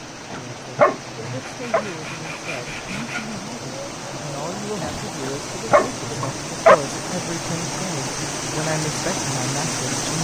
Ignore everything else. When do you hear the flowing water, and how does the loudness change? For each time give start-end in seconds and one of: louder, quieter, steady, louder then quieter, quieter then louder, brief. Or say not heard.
0.0-10.2 louder.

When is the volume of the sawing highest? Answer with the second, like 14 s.
3 s.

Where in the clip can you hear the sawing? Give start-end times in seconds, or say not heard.
1.4-3.4.